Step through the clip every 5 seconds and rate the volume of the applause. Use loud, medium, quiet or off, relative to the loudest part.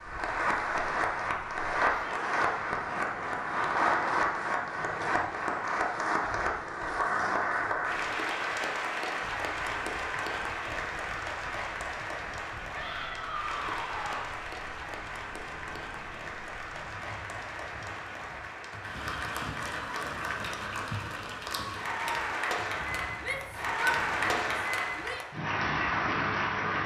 loud, loud, medium, medium, loud, loud.